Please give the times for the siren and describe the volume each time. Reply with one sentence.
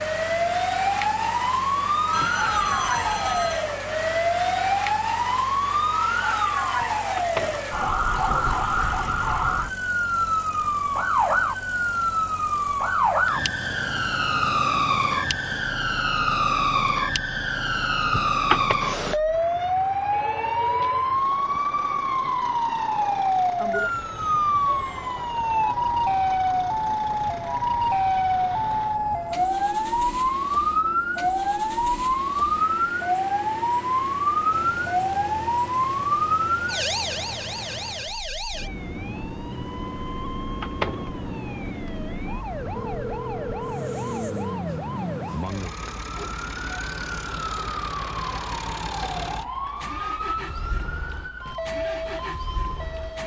You can hear the siren from 0.0 to 53.2 s, getting quieter.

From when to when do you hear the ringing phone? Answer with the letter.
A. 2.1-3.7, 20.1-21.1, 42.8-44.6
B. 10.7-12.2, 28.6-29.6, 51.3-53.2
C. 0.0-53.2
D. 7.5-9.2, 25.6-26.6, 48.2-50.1
A.